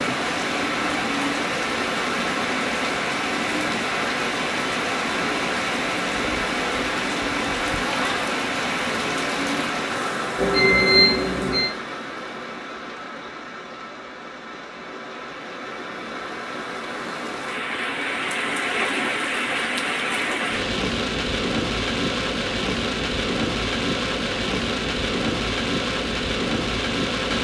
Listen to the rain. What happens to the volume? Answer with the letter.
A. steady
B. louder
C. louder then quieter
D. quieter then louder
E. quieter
D.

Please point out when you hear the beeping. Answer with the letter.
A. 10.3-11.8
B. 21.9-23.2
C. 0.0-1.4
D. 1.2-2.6
A.